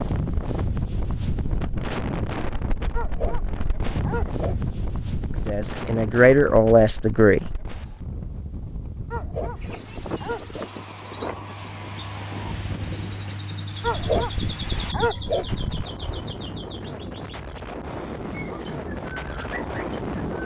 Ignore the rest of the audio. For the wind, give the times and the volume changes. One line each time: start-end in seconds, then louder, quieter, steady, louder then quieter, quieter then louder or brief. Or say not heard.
0.0-20.4 quieter then louder.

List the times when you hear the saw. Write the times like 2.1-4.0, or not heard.
10.5-12.6.